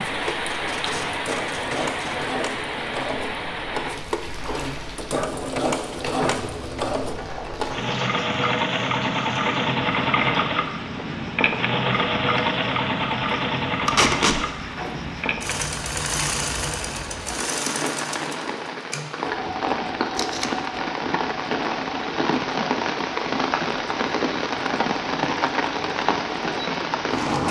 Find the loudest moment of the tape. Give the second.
14 s.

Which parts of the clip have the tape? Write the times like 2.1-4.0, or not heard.
0.3-2.1, 13.8-14.4, 20.1-20.6.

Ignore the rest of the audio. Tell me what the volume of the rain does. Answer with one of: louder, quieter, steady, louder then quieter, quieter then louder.
quieter then louder.